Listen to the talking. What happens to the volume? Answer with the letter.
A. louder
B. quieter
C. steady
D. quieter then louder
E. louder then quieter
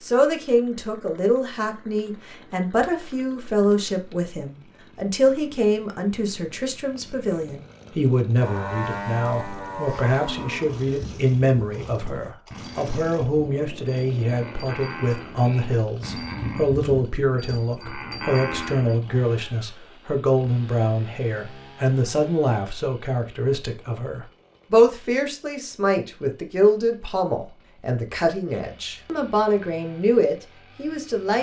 C.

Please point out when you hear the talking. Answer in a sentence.
You can hear the talking from 0.0 to 31.3 s.